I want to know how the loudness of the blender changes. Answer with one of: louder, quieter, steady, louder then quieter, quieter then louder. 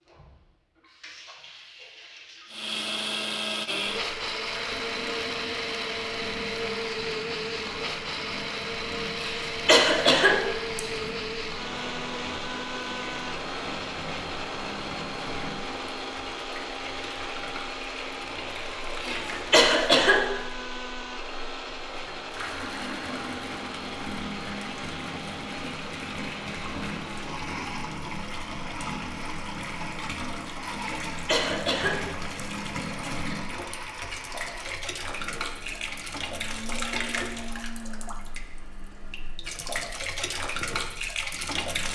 quieter.